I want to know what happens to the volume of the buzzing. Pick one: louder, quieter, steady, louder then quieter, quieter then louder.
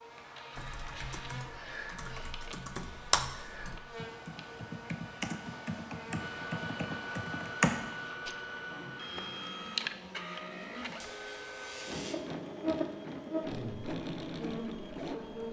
louder.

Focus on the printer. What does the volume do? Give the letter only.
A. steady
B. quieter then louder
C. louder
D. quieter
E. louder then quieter
C.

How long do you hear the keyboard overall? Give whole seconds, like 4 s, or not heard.
8 s.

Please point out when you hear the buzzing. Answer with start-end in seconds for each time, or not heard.
0.0-15.4.